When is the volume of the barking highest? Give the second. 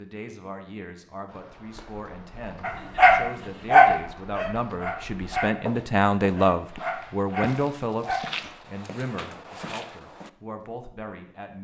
4 s.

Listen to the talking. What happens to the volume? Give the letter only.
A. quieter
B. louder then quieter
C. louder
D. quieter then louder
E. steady
B.